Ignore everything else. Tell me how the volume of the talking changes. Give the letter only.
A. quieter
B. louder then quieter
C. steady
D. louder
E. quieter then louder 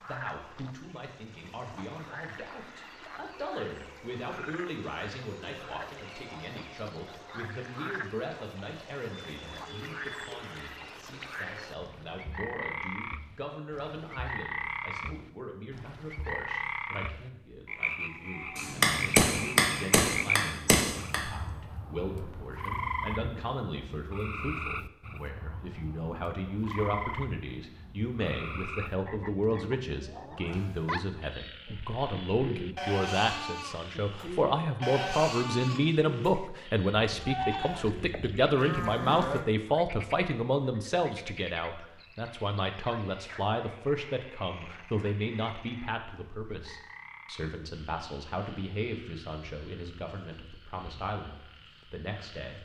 B.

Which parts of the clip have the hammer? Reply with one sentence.
You can hear the hammer from 18.6 to 21.2 s.